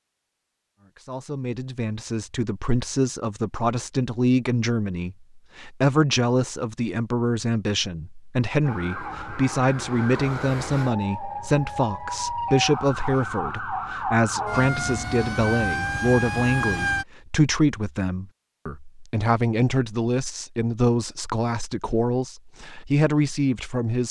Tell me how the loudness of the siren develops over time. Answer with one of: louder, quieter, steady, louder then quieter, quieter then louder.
louder.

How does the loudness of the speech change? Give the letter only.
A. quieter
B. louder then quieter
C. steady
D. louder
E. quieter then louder
C.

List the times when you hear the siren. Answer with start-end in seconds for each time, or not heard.
8.6-17.1.